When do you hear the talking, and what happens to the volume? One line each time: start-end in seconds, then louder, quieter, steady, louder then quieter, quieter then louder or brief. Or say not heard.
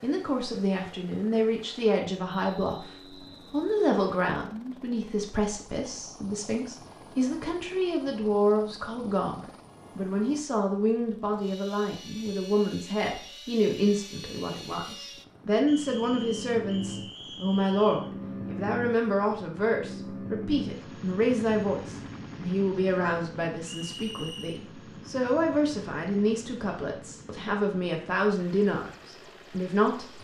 0.0-2.9 brief
3.5-30.1 steady.